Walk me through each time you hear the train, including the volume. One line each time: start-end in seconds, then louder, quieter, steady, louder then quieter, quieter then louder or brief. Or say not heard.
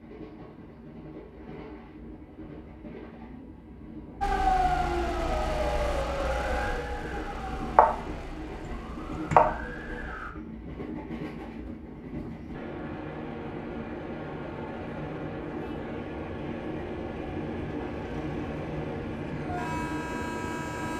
0.0-20.9 louder.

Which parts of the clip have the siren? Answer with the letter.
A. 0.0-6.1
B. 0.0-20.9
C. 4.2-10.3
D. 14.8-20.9
C.